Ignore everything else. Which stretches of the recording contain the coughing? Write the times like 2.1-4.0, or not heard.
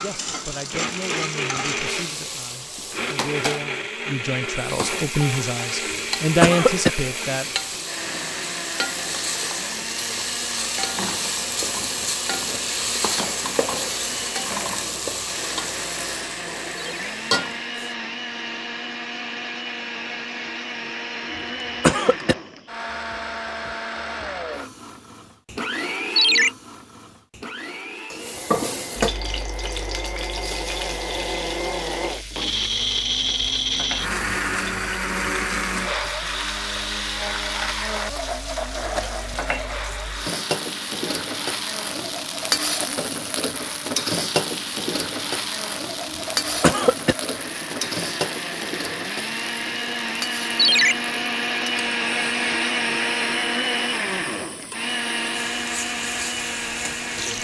5.8-6.9, 21.3-22.4, 46.1-47.1.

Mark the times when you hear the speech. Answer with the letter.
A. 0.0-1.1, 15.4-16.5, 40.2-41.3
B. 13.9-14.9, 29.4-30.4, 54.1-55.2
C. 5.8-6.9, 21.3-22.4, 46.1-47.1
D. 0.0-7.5
D.